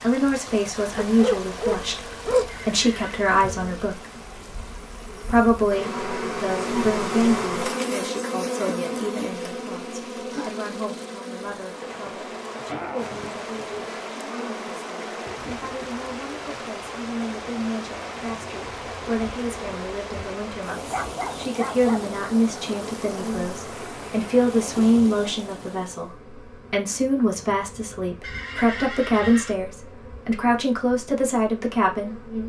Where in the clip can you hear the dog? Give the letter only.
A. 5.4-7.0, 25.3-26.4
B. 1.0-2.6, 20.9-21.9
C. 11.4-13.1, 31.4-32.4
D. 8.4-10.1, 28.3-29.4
B.